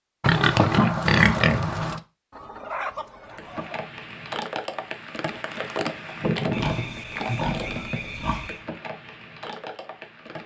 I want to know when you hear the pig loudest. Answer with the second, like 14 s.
1 s.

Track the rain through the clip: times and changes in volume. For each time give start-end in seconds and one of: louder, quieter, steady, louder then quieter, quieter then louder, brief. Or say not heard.
3.3-10.4 louder then quieter.